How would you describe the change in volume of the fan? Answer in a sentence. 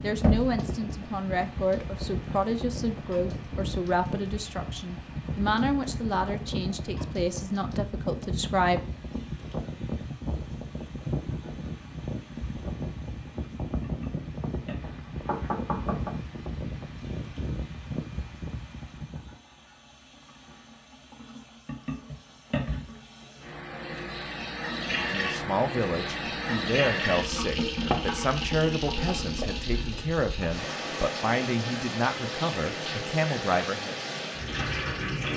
The volume of the fan stays about the same.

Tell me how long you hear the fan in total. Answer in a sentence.
You can hear the fan for 19 seconds altogether.